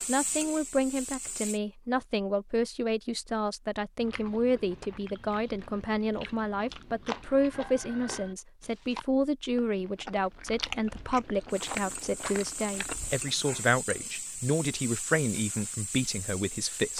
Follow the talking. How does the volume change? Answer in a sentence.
The volume of the talking stays about the same.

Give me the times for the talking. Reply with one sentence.
You can hear the talking from 0.1 to 16.9 s.